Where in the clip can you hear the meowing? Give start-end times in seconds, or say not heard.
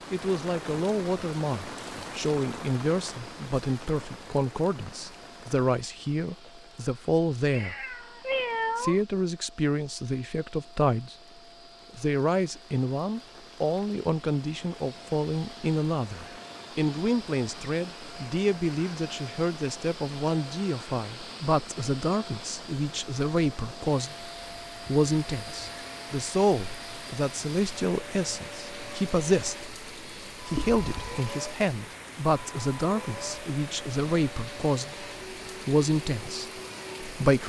7.5-9.0, 30.5-31.2.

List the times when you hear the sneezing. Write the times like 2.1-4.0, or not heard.
not heard.